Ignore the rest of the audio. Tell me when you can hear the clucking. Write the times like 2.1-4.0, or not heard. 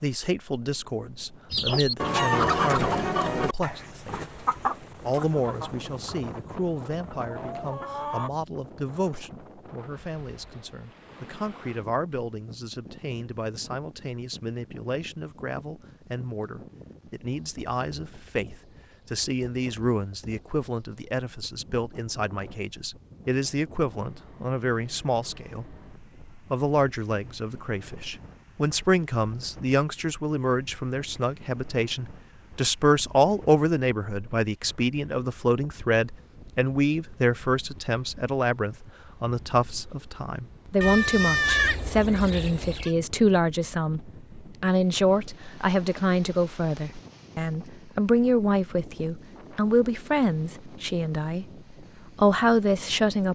1.5-8.3.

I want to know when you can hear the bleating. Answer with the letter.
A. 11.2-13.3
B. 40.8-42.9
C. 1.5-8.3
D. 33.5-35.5
B.